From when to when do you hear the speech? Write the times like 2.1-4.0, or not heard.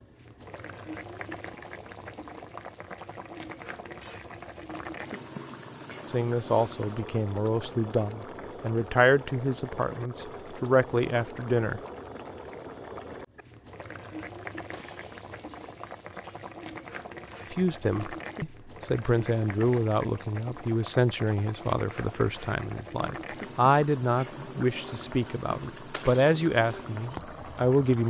6.0-11.8, 17.5-28.0.